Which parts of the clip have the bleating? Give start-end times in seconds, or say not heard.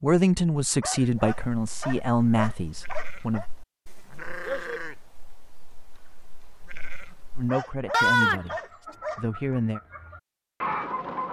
1.0-8.4.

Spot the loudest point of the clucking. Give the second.
11 s.